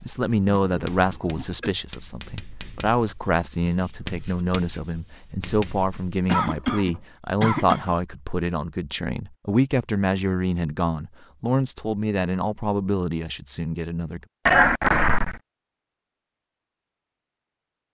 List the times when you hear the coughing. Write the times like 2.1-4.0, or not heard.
0.4-1.7, 6.2-8.0, 14.4-15.4.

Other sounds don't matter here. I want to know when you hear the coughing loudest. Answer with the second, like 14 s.
15 s.